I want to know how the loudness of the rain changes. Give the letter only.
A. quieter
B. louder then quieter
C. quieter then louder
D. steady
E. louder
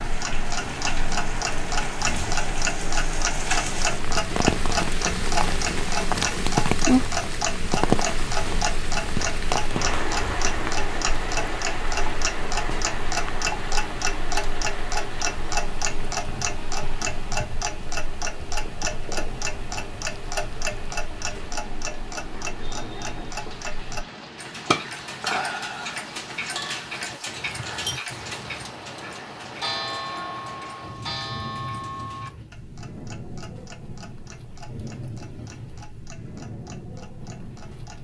A.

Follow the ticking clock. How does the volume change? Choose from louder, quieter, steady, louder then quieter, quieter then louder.
quieter.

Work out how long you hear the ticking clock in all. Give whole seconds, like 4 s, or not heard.
38 s.